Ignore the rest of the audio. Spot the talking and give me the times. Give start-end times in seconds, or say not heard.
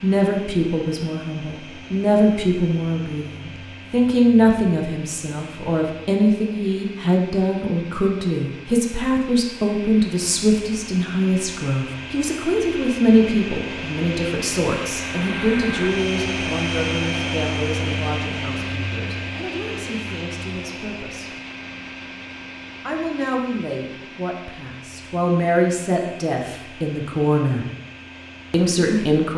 0.0-21.4, 22.9-27.6, 28.5-29.3.